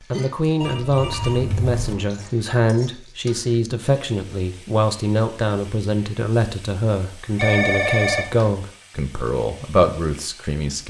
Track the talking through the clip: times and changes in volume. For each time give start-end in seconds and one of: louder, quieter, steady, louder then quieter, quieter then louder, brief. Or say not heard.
0.1-10.8 steady.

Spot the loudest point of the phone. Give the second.
8 s.